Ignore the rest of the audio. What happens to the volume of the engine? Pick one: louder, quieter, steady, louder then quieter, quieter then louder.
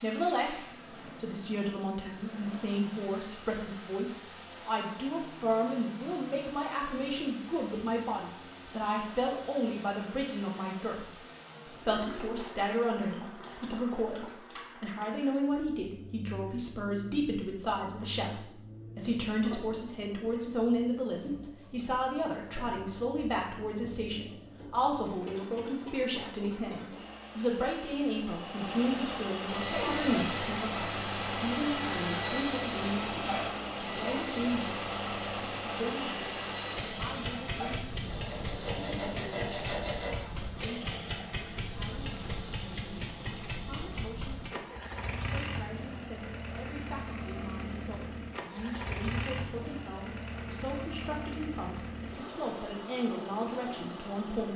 louder.